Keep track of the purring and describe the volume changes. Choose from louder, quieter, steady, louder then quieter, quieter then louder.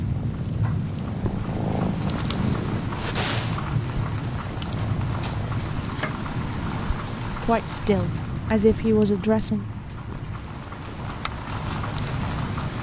louder then quieter.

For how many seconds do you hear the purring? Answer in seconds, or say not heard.
6 s.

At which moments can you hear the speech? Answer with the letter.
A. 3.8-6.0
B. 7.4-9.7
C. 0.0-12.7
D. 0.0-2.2
B.